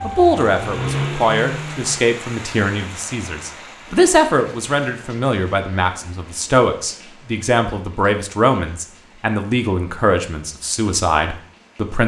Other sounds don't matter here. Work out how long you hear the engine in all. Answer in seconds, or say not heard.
2 s.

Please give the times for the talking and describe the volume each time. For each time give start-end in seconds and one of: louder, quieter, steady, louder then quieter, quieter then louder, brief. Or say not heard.
0.0-12.0 steady.